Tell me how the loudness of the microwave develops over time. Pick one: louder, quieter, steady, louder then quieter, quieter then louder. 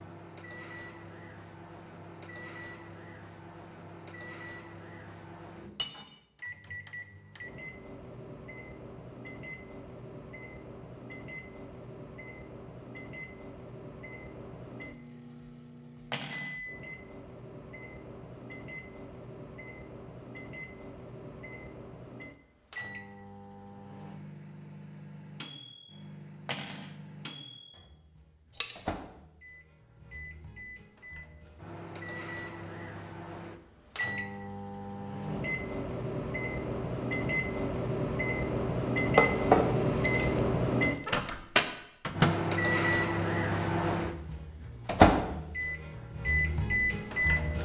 louder.